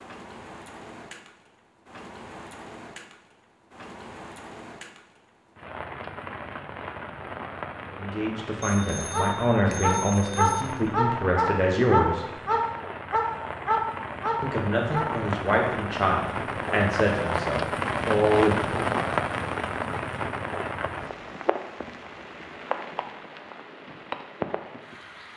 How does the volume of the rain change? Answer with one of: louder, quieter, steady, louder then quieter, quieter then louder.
louder then quieter.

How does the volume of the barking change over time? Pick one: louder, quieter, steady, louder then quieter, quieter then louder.
steady.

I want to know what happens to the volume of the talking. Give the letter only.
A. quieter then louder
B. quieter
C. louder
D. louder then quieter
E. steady
E.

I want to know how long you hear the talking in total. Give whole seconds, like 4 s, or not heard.
9 s.